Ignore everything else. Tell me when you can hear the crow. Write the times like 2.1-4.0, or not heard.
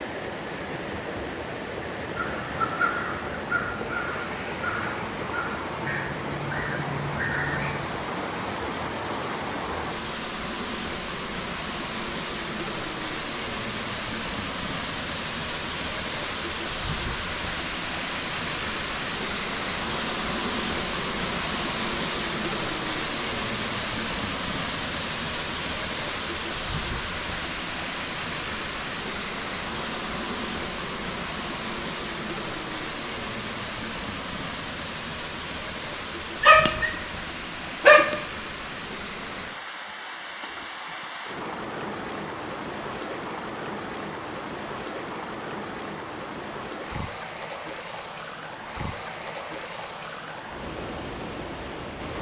2.1-7.9.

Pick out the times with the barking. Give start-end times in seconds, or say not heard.
36.4-38.2.